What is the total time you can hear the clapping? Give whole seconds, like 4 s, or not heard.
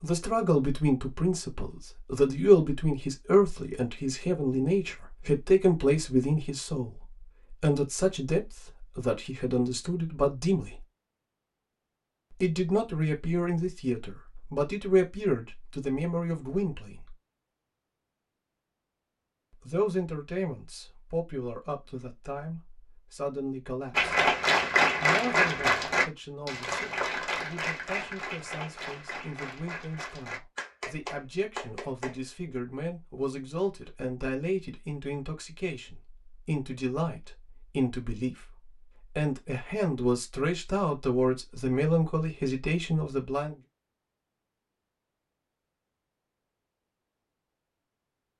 8 s.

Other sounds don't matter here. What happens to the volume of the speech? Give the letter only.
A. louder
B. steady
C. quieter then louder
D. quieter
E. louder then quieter
C.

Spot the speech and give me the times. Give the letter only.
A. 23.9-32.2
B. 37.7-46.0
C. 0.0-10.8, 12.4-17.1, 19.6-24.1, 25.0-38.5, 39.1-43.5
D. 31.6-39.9
C.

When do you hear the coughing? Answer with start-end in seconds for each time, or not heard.
not heard.